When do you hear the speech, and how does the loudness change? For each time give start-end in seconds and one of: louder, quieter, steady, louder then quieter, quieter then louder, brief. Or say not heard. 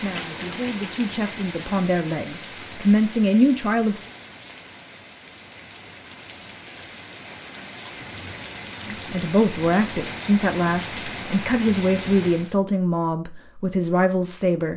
0.0-4.0 louder
8.8-14.7 steady.